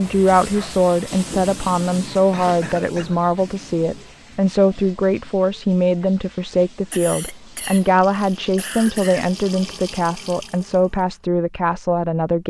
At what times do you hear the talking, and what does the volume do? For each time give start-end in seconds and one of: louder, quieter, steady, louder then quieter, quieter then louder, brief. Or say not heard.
0.0-12.4 steady.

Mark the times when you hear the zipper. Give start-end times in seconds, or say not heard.
not heard.